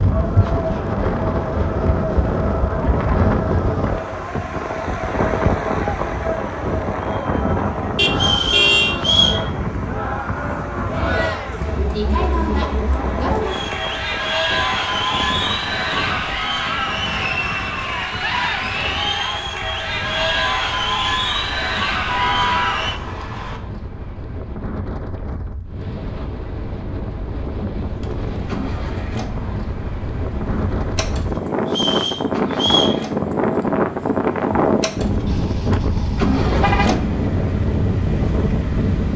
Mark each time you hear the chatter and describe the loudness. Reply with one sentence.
The chatter can be heard from 0.0 to 23.0 s, getting louder.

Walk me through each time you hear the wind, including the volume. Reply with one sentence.
The wind can be heard from 0.0 to 39.1 s, getting quieter then louder.